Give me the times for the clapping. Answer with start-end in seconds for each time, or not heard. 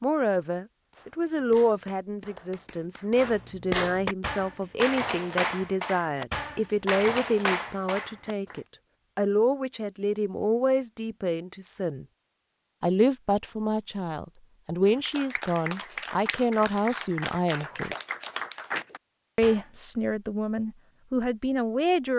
0.9-8.6, 14.8-19.6.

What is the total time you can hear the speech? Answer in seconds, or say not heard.
20 s.